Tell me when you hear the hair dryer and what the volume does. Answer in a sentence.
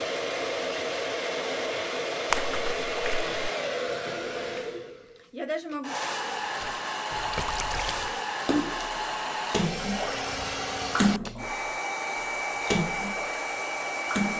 The hair dryer can be heard from 0.0 to 14.3 s, at a steady volume.